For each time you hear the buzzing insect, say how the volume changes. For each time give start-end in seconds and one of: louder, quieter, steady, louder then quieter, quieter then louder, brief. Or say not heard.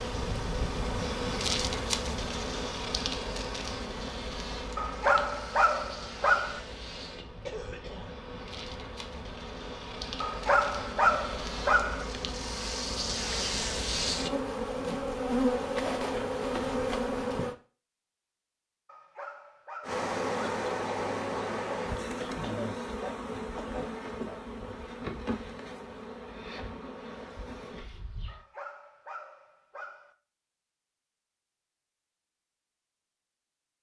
0.0-17.6 quieter then louder
19.8-28.4 quieter.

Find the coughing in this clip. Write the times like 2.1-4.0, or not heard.
7.5-8.2, 22.4-24.4.